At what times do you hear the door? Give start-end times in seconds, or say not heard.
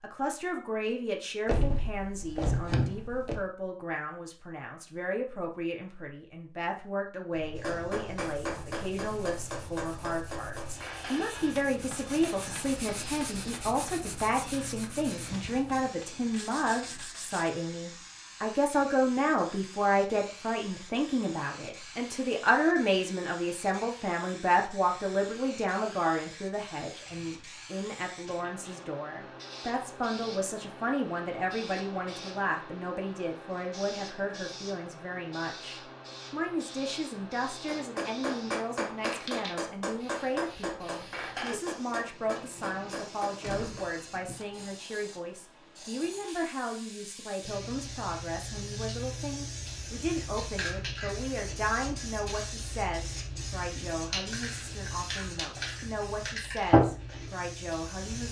1.4-3.5, 43.4-44.7.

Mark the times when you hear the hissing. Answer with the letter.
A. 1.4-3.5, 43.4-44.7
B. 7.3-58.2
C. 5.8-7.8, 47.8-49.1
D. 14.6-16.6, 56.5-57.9
B.